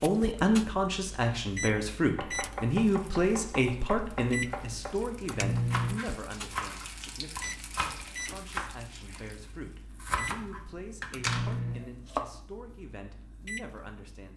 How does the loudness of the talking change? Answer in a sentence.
The volume of the talking goes down.